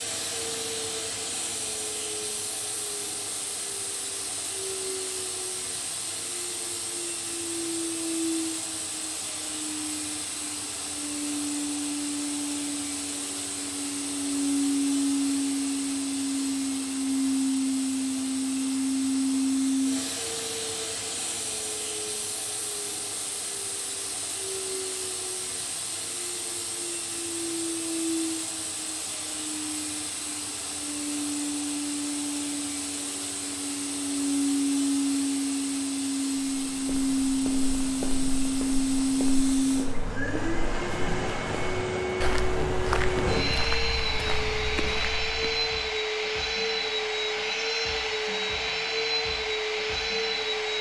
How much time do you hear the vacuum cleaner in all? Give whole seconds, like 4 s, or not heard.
51 s.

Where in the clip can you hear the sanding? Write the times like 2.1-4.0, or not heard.
not heard.